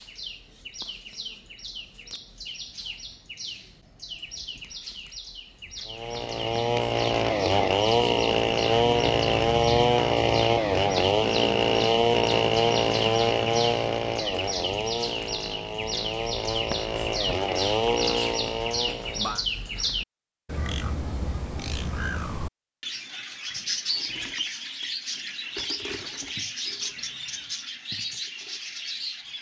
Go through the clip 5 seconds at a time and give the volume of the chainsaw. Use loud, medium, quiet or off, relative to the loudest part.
off, loud, loud, medium, off, off.